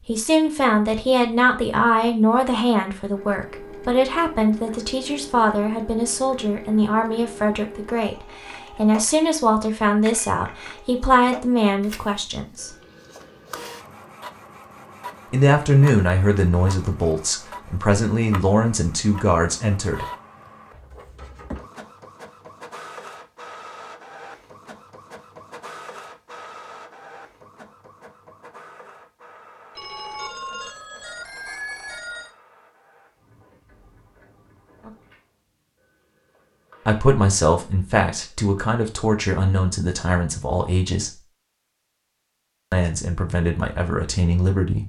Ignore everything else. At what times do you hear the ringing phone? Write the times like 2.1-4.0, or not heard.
29.8-32.4.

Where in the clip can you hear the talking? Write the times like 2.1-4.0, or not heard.
0.1-12.8, 15.3-20.1, 36.9-41.1, 42.7-44.8.